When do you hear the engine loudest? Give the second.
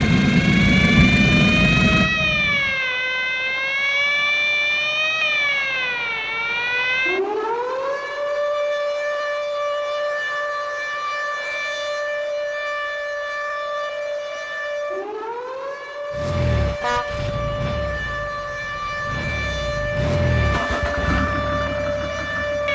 1 s.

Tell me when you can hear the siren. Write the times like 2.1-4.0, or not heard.
0.0-22.7.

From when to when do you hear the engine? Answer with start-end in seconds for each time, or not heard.
0.0-2.8, 16.1-22.7.